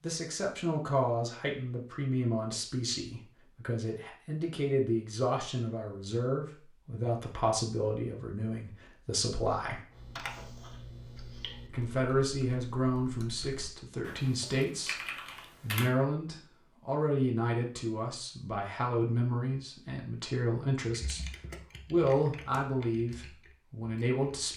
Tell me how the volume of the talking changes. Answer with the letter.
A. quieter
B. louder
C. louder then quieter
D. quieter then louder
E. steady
E.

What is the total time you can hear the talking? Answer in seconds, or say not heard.
23 s.